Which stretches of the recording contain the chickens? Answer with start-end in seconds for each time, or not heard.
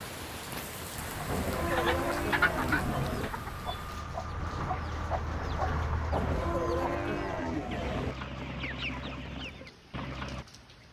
0.9-10.4.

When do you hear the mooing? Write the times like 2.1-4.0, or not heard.
1.2-3.3, 6.1-8.2.